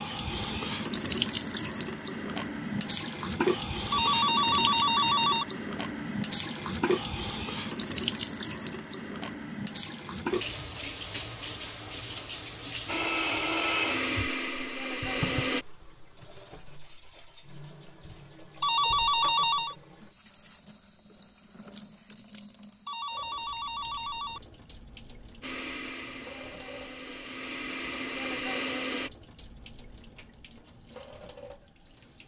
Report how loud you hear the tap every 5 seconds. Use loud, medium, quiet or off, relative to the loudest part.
loud, loud, medium, quiet, quiet, quiet, quiet.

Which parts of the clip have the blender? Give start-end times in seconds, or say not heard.
12.8-15.7, 25.4-29.1.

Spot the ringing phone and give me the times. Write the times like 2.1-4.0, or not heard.
3.9-5.5, 18.6-19.8, 22.9-24.4.